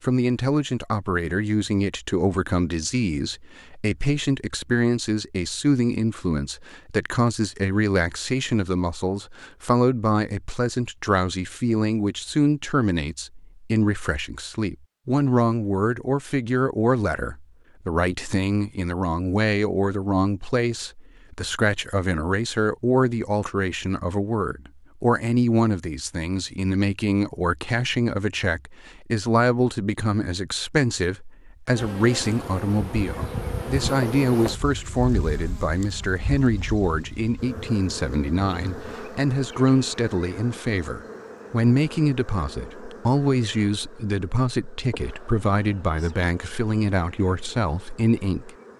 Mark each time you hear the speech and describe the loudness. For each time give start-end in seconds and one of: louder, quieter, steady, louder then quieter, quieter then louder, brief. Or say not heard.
0.0-48.5 steady.